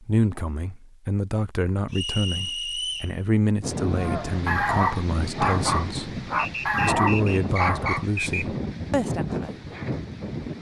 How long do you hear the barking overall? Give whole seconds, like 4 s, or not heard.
4 s.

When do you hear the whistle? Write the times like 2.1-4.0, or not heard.
1.9-3.2, 6.3-8.4.